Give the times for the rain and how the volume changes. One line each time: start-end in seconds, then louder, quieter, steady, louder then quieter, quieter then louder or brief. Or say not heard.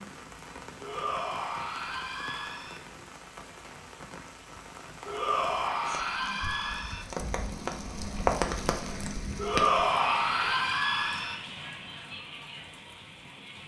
0.0-13.6 louder then quieter.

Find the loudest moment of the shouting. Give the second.
10 s.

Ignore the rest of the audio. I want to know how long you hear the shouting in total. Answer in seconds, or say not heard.
6 s.